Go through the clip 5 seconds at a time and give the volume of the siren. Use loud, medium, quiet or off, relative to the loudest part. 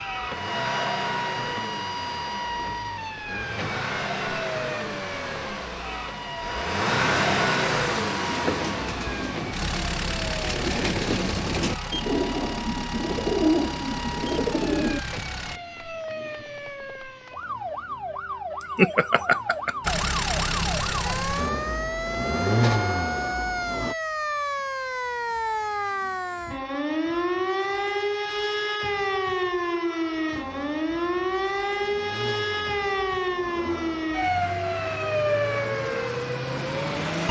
medium, medium, medium, medium, loud, loud, loud, loud.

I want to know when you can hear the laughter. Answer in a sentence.
The laughter can be heard from 18.6 to 20.1 s.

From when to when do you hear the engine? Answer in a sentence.
The engine can be heard from 0.0 to 15.6 s, from 19.8 to 23.9 s and from 30.2 to 37.2 s.